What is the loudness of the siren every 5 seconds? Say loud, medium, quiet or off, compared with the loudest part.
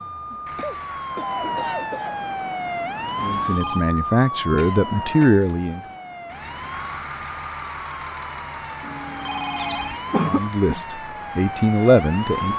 loud, medium, loud.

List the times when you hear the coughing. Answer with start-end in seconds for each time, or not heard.
0.6-2.1, 4.5-6.0, 9.6-10.8.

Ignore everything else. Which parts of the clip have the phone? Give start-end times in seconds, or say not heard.
3.4-3.9, 8.8-10.0.